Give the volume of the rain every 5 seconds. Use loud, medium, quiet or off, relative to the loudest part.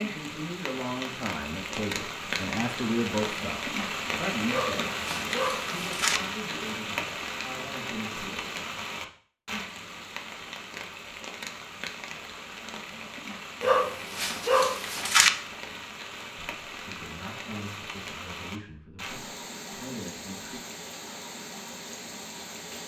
loud, loud, medium, medium, medium.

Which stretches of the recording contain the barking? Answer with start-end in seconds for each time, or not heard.
4.5-6.2, 13.6-15.3.